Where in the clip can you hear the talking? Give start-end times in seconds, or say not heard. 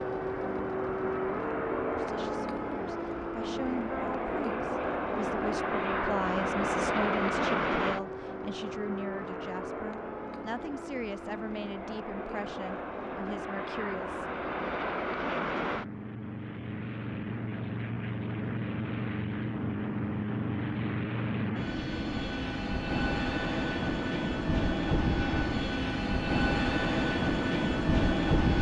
1.9-14.2.